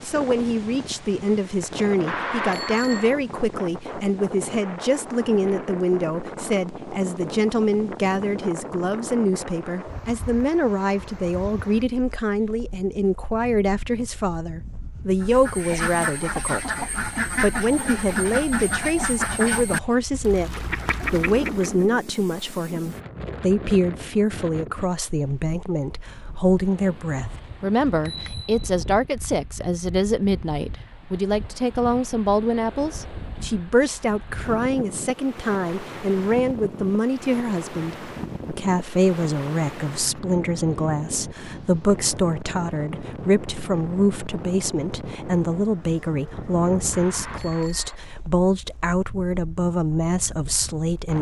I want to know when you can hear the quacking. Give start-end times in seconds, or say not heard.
15.2-21.9.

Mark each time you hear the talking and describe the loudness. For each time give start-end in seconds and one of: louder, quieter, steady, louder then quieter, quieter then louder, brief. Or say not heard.
0.0-51.1 steady.